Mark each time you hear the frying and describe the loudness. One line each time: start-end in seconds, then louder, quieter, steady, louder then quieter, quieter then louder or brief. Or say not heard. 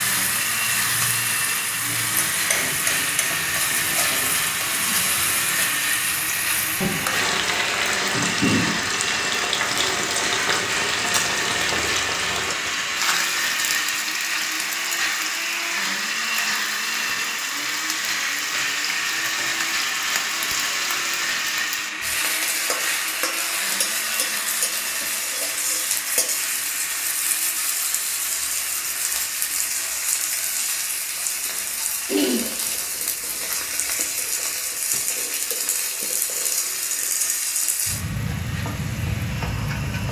0.0-40.0 steady.